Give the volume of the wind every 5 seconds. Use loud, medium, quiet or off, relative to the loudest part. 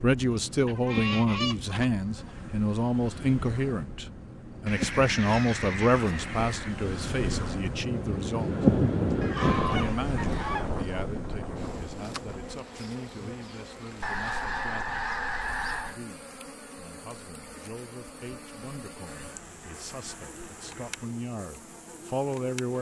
quiet, loud, medium, off, off.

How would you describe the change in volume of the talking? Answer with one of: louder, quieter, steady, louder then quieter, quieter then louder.
quieter then louder.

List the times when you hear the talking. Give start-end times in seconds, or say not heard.
0.0-8.8, 9.7-15.1, 15.8-22.7.